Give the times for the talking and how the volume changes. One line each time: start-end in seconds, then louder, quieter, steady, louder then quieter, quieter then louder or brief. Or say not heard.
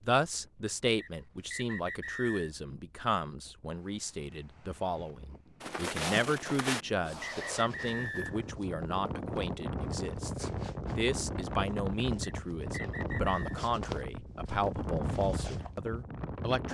0.1-16.6 steady.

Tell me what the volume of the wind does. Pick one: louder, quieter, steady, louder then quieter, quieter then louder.
louder.